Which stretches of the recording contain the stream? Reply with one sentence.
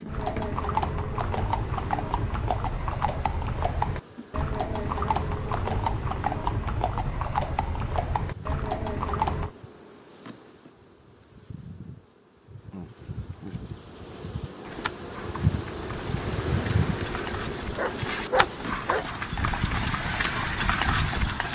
The stream can't be heard in this clip.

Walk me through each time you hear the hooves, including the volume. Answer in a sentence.
The hooves can be heard from 0.1 to 9.6 s, at a steady volume; and from 12.9 to 21.5 s, getting louder.